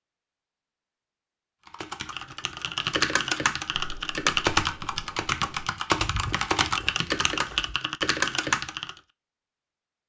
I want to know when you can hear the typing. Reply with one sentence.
The typing can be heard from 1.6 to 8.9 s.